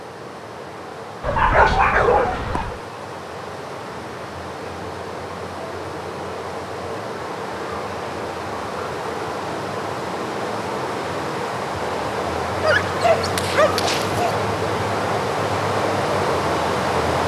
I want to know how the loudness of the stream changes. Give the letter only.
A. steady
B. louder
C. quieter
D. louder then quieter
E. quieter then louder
B.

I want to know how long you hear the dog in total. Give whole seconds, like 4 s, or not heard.
3 s.